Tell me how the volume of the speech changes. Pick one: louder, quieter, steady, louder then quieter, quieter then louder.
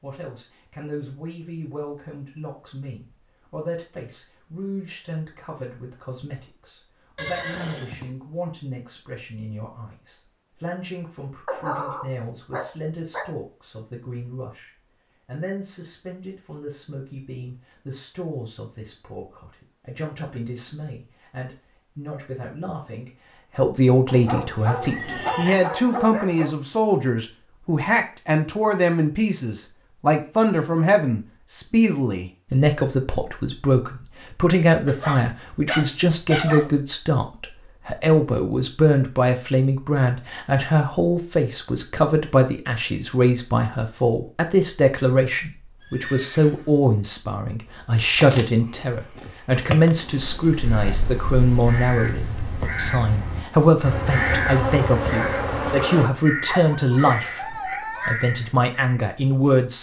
louder.